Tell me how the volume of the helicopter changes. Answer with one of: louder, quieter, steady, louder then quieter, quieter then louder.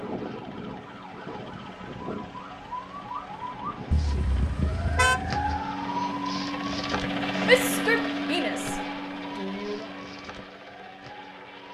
louder then quieter.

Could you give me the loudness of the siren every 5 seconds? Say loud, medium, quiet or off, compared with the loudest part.
medium, loud, quiet.